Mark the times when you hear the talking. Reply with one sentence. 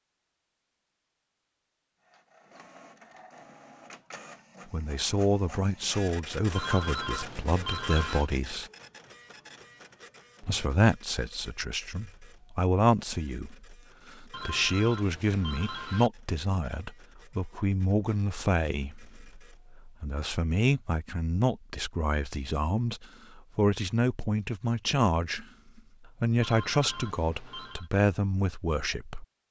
You can hear the talking from 4.7 to 8.7 s and from 10.4 to 29.2 s.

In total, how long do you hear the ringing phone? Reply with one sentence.
The ringing phone can be heard for 5 seconds in total.